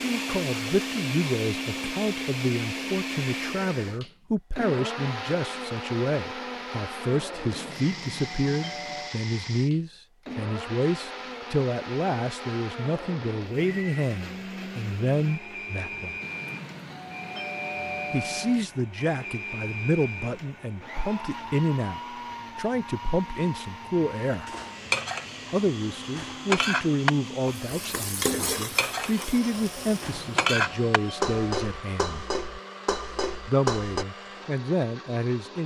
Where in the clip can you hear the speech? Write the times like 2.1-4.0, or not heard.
0.0-16.1, 18.1-24.5, 25.5-32.2, 33.5-35.6.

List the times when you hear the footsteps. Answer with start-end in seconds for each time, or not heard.
not heard.